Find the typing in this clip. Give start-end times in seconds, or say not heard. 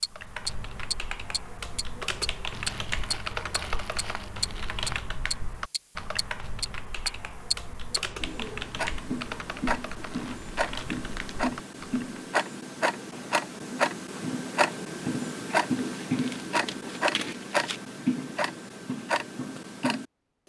0.1-12.1.